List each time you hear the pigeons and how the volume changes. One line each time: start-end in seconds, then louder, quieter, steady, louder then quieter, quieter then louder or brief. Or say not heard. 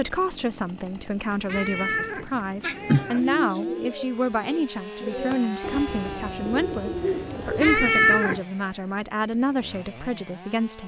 3.0-7.8 quieter then louder.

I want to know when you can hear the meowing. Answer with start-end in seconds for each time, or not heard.
1.4-3.2, 7.6-8.4.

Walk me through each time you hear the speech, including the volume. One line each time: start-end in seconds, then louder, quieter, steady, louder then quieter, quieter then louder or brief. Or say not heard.
0.0-10.8 steady.